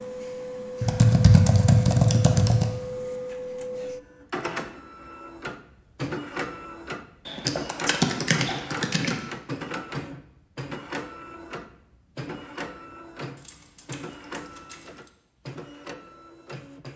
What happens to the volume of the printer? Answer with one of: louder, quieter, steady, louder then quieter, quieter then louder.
quieter.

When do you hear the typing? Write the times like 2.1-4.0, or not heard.
0.8-2.7, 7.2-9.2, 13.3-15.1.